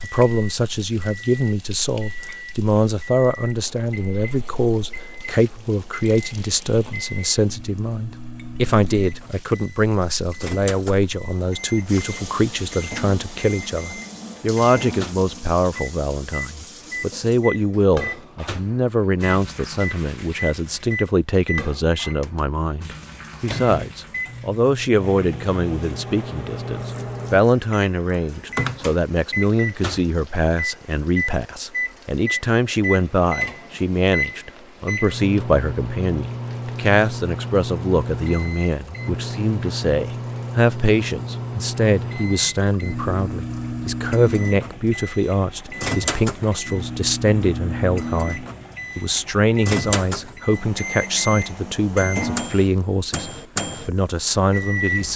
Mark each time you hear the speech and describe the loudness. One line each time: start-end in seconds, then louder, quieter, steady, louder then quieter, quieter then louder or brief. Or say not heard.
0.0-55.1 steady.